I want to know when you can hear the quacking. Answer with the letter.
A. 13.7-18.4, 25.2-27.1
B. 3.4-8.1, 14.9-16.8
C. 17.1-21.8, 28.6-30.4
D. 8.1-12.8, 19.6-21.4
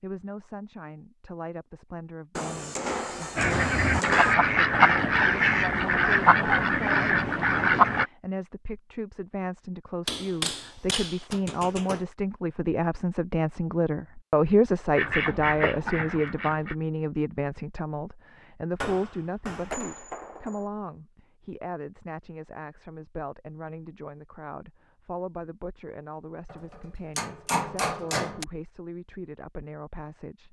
B.